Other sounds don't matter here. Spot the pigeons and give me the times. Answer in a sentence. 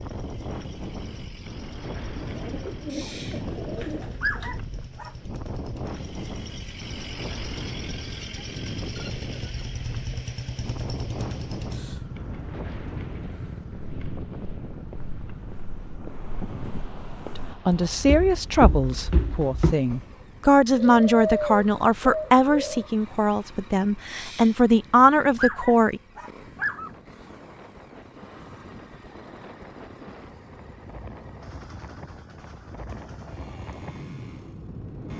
The pigeons can be heard from 2.1 to 4.6 s and from 20.7 to 22.9 s.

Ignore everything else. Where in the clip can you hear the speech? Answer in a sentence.
You can hear the speech from 17.4 to 26.0 s.